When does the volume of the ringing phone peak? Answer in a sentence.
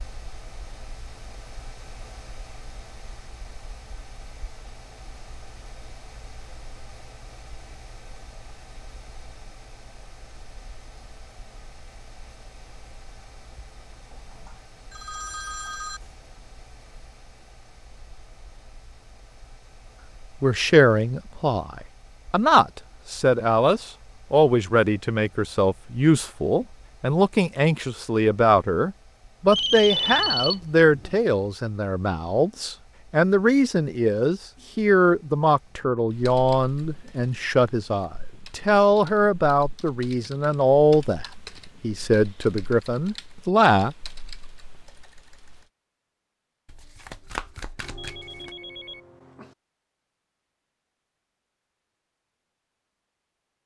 The volume of the ringing phone peaks at 30 seconds.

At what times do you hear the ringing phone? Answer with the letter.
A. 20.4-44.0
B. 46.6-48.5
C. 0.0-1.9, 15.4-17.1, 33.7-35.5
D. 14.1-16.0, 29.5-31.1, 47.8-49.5
D.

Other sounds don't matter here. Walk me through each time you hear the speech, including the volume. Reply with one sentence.
You can hear the speech from 20.4 to 44.0 s, at a steady volume.